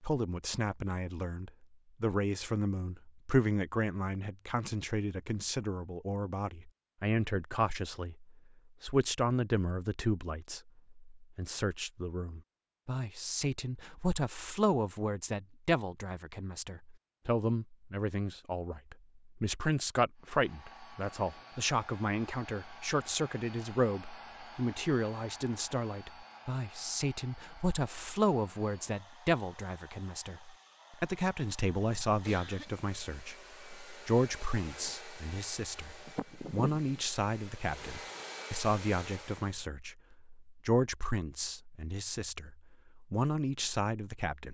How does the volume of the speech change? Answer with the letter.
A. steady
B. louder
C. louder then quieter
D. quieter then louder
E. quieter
A.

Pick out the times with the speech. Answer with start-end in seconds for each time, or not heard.
0.0-44.5.